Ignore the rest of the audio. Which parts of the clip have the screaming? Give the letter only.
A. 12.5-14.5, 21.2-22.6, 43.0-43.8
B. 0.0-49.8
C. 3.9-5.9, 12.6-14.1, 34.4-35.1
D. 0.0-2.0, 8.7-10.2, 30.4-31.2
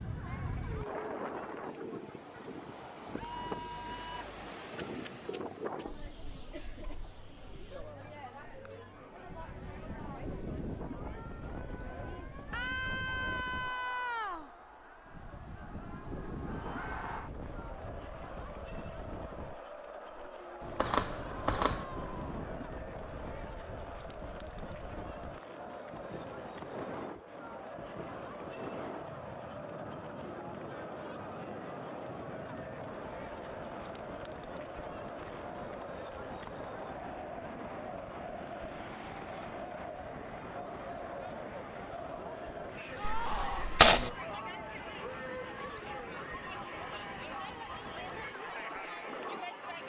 A.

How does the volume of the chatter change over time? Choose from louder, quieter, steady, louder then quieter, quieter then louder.
louder.